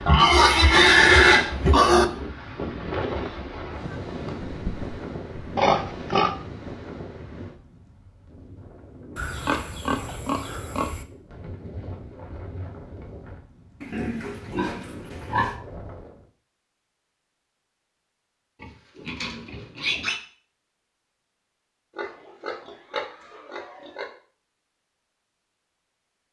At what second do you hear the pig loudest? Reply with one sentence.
The volume of the pig peaks at 1 second.